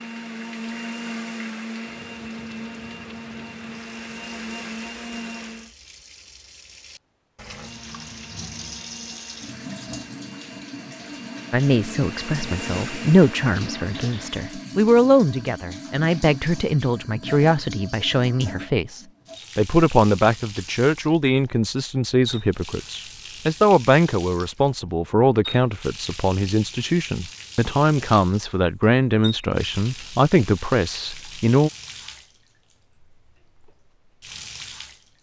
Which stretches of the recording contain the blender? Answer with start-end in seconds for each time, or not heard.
0.0-5.7, 7.5-14.7.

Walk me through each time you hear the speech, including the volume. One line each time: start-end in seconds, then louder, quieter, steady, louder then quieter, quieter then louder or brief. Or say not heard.
11.5-31.7 steady.